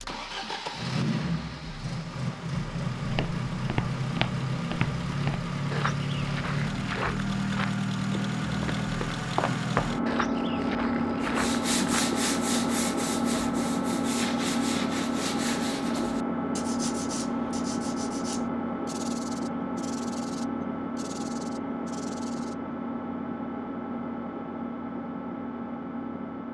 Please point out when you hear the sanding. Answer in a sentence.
The sanding can be heard from 11.2 to 22.6 s.